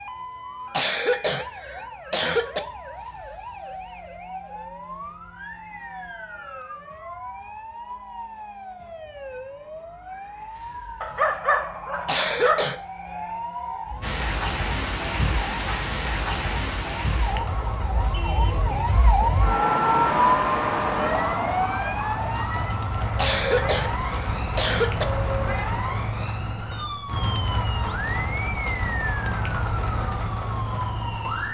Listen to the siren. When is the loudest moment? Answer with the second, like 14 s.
20 s.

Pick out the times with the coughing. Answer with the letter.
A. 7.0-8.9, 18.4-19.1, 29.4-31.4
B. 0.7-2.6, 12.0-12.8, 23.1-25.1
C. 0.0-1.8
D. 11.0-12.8
B.